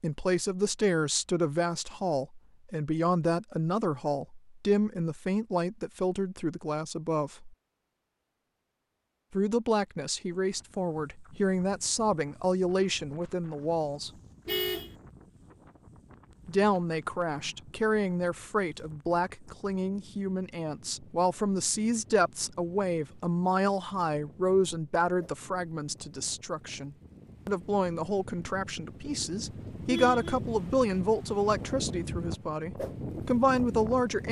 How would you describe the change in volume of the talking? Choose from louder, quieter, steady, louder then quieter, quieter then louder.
steady.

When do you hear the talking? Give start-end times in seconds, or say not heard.
0.0-7.5, 9.3-14.1, 16.4-34.2.